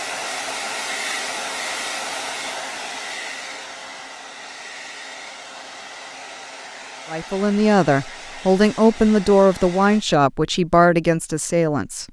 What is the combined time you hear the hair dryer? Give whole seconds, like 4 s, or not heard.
10 s.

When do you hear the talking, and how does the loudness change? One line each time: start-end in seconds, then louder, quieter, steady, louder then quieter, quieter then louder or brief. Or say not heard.
7.1-12.0 steady.